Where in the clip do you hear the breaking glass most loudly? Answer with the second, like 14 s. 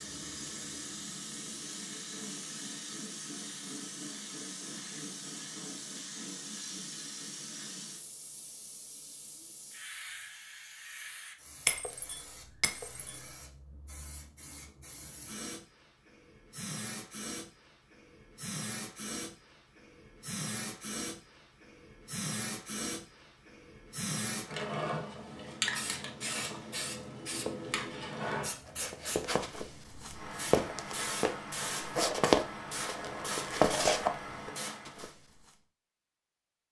12 s.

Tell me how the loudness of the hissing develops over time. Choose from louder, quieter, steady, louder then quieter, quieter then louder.
quieter then louder.